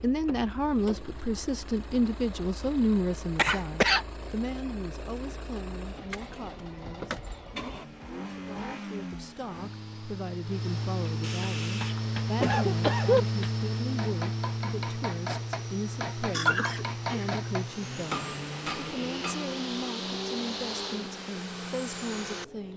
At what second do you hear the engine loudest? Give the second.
13 s.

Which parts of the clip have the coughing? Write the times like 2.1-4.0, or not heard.
3.4-4.0, 11.2-13.2, 16.3-17.2.